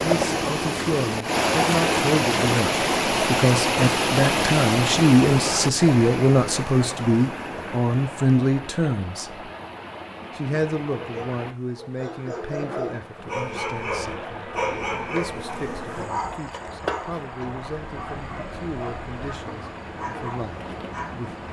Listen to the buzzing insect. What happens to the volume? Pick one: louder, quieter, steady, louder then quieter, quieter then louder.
louder then quieter.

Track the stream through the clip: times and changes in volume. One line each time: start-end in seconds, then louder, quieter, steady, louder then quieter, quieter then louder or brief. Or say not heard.
0.0-21.4 quieter.